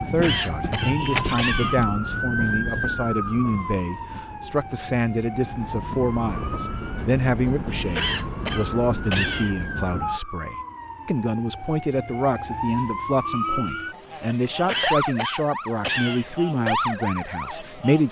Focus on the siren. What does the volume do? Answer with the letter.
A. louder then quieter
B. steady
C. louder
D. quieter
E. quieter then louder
E.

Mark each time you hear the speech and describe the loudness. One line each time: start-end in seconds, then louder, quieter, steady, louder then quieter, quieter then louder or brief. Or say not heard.
0.0-18.0 steady.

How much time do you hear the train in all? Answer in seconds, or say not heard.
10 s.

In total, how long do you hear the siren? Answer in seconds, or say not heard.
18 s.